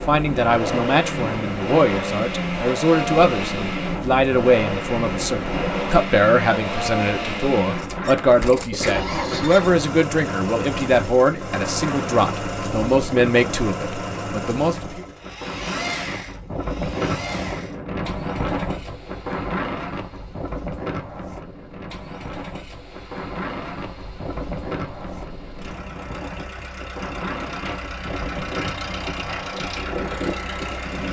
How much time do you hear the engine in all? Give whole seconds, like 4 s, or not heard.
31 s.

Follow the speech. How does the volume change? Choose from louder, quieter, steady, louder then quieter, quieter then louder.
steady.